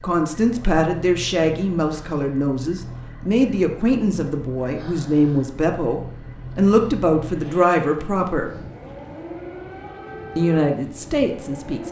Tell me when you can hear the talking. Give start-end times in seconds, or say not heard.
0.0-8.5, 10.3-11.8.